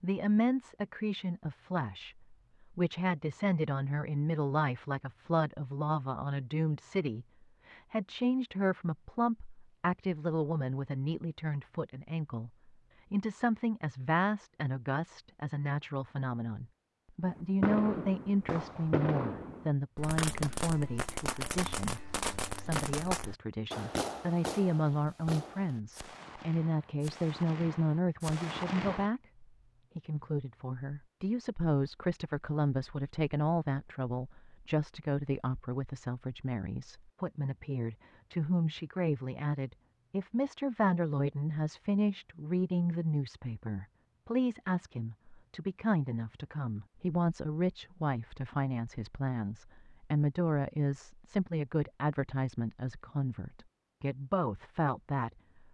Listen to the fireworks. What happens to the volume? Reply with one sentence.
The volume of the fireworks goes down.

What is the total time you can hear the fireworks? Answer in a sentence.
You can hear the fireworks for 12 seconds altogether.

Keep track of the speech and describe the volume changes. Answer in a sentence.
The loudness of the speech stays about the same.